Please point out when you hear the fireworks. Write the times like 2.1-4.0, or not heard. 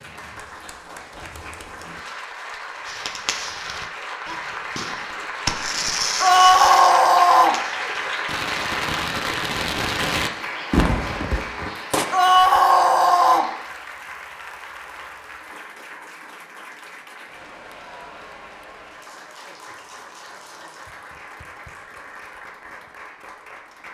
2.9-12.1.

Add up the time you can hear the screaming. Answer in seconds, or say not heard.
3 s.